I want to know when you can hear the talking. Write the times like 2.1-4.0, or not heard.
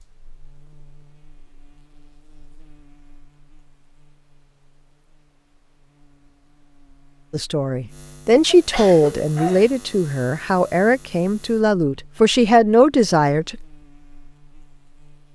7.3-13.6.